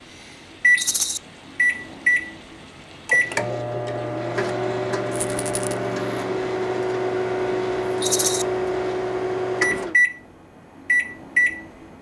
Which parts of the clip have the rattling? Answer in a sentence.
The rattling can be heard from 0.8 to 1.2 s, from 5.1 to 5.8 s and from 8.0 to 8.4 s.